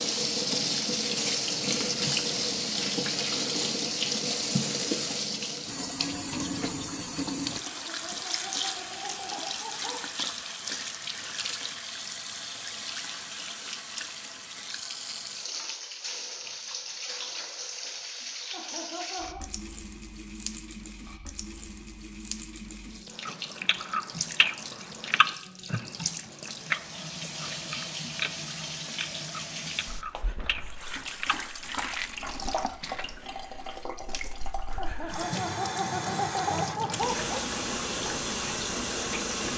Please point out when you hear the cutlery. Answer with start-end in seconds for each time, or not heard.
not heard.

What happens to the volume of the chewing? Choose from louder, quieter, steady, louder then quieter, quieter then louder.
quieter.